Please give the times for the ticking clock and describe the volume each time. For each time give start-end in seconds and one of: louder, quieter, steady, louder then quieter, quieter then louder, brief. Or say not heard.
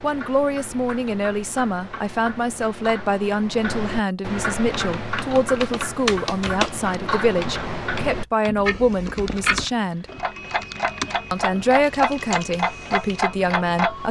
0.0-14.0 louder.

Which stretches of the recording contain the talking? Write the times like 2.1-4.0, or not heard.
0.0-10.1, 11.3-14.0.